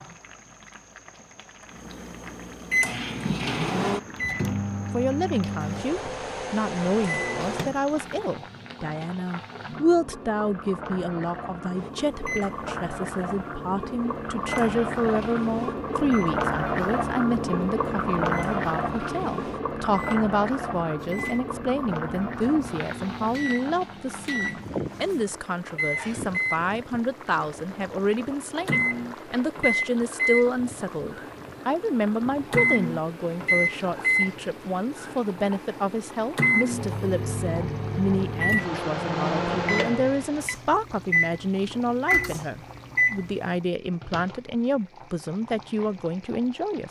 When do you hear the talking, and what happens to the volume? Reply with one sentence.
You can hear the talking from 4.8 to 46.8 s, at a steady volume.